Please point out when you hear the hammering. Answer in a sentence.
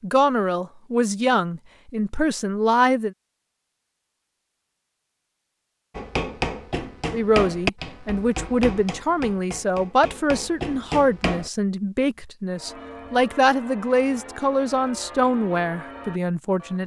The hammering can be heard from 6.0 to 11.5 s.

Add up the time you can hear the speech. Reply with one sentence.
The speech can be heard for 13 seconds in total.